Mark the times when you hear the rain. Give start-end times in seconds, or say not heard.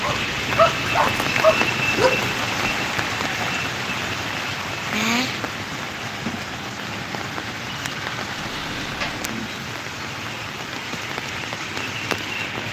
0.0-12.6.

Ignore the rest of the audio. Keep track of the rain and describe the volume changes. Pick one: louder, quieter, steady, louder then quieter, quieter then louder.
quieter.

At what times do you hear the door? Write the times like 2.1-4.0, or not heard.
8.3-9.3.